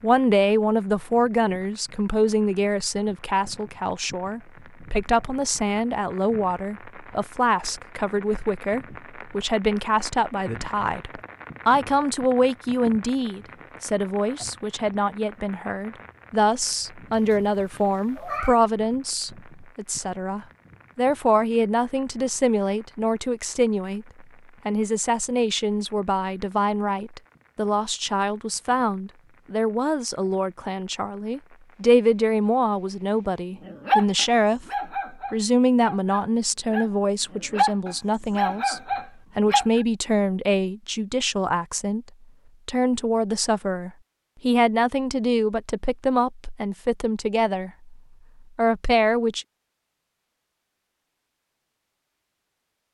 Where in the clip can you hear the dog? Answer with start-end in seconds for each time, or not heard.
33.6-39.8.